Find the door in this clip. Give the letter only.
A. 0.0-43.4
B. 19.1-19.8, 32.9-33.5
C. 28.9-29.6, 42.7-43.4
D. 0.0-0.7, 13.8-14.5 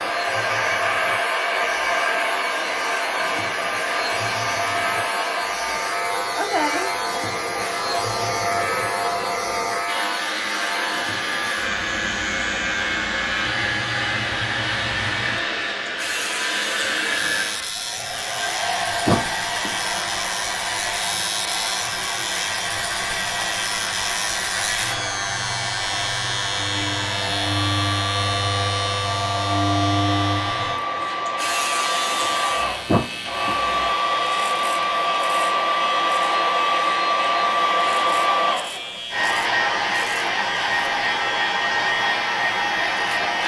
B.